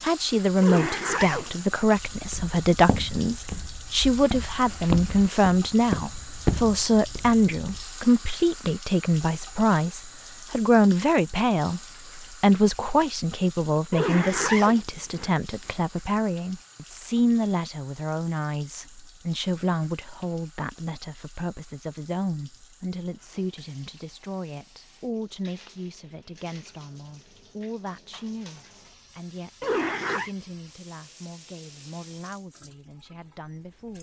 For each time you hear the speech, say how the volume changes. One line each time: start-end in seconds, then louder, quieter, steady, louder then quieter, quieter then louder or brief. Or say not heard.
0.0-33.9 quieter.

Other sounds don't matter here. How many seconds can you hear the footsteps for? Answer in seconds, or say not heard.
6 s.